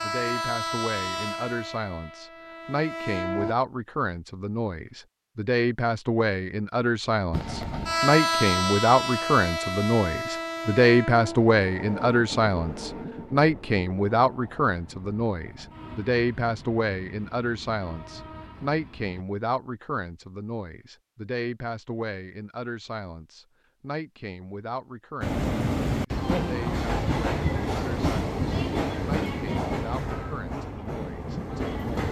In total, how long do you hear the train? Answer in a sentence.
You can hear the train for 22 seconds altogether.